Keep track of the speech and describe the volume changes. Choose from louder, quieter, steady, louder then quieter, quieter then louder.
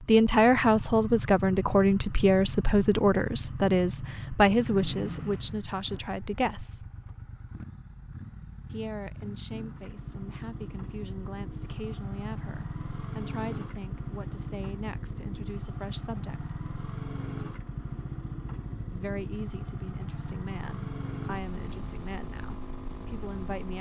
quieter.